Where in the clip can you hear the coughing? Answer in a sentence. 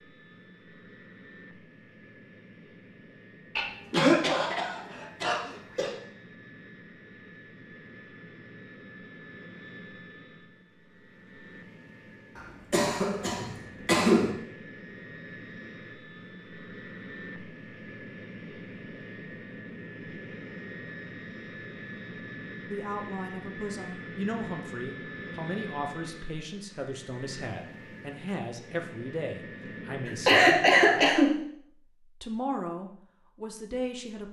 You can hear the coughing from 3.5 to 6.0 s, from 12.3 to 14.3 s and from 30.1 to 31.4 s.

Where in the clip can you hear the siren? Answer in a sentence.
The siren can't be heard in this clip.